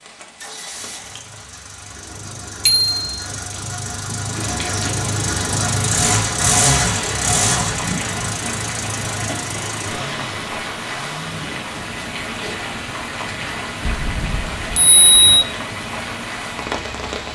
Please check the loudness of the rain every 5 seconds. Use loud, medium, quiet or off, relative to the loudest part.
medium, loud, loud, loud.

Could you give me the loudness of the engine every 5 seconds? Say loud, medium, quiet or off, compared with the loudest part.
medium, loud, quiet, quiet.